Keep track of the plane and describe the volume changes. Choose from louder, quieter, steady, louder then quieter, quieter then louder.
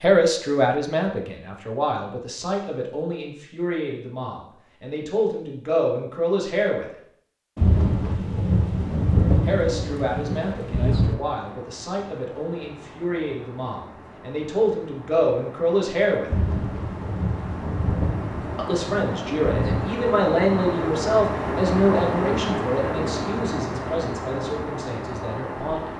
louder.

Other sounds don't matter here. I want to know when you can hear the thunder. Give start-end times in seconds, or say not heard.
7.5-11.2, 16.2-19.9.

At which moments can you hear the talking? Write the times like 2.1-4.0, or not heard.
0.0-6.8, 9.4-16.3, 18.6-25.9.